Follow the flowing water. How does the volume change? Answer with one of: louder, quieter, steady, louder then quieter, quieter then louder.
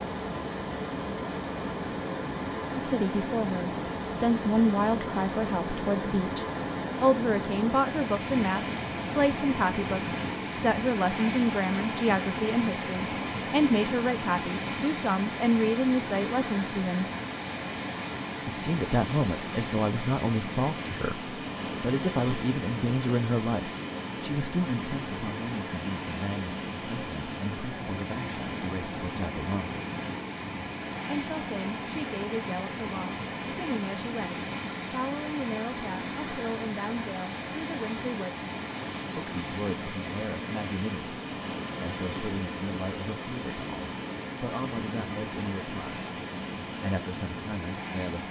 steady.